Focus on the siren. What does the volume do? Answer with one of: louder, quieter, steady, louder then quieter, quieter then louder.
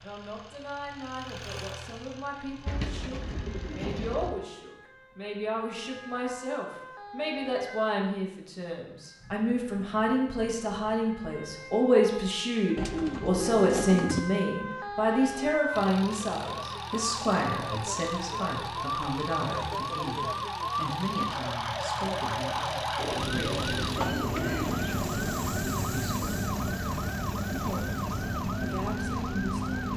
louder.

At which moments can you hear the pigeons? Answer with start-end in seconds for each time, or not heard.
2.6-4.3, 12.8-14.2, 22.9-25.0.